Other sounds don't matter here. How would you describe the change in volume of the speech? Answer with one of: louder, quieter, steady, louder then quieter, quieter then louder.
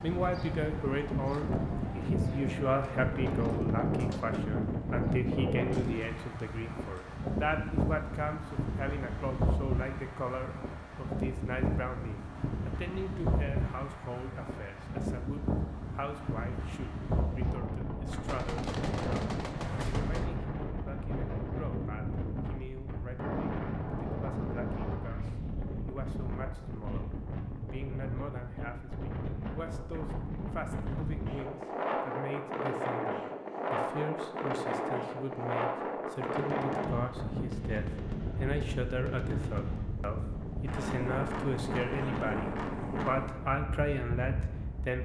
quieter then louder.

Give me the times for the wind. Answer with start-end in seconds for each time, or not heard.
0.0-44.9.